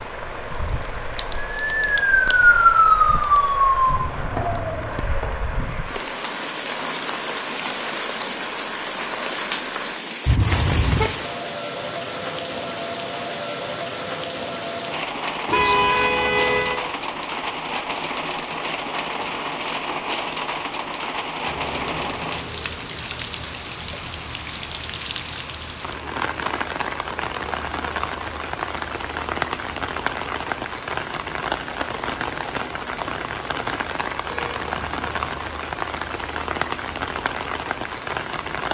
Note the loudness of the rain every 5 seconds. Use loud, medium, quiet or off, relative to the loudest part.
medium, loud, loud, loud, loud, loud, loud, loud.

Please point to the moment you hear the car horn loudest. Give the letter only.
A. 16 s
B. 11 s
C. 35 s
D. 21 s
A.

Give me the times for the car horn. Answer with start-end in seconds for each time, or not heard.
10.2-11.1, 15.4-16.8, 34.2-35.5.